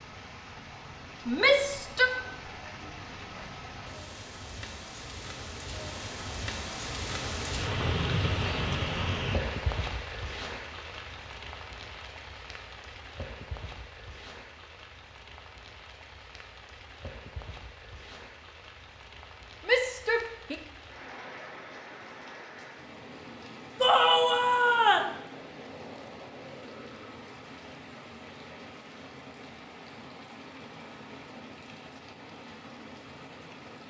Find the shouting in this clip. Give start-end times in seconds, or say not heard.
1.2-2.1, 19.6-20.6, 23.8-25.1.